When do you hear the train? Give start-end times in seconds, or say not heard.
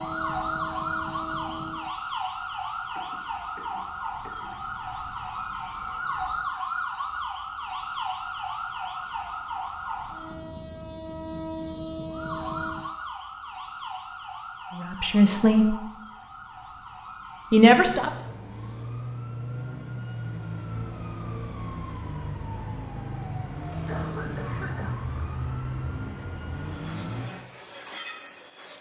0.0-1.9, 10.1-12.9, 26.6-28.7.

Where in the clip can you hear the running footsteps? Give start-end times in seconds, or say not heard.
not heard.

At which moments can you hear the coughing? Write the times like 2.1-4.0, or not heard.
3.0-4.7, 23.9-24.9.